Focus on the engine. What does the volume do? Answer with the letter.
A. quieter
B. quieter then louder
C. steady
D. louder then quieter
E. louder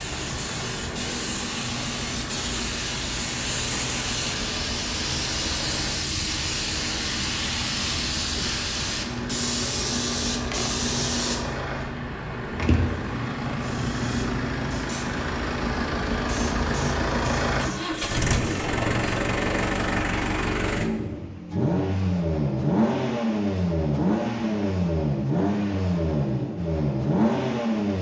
E.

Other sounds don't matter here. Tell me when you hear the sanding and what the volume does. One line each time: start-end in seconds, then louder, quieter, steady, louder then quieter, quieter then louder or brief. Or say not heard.
not heard.